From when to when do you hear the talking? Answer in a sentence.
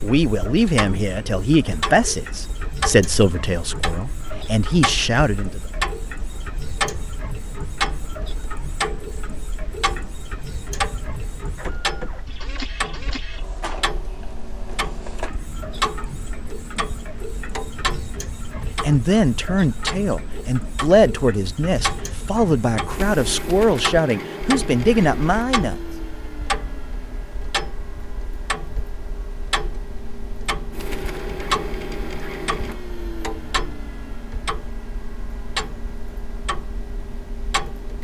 You can hear the talking from 0.0 to 5.6 s and from 18.8 to 25.8 s.